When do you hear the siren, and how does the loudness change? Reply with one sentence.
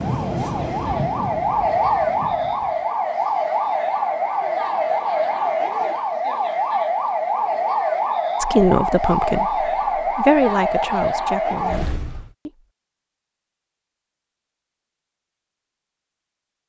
You can hear the siren from 0.0 to 12.3 s, at a steady volume.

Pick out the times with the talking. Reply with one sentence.
The talking can be heard from 8.4 to 12.5 s.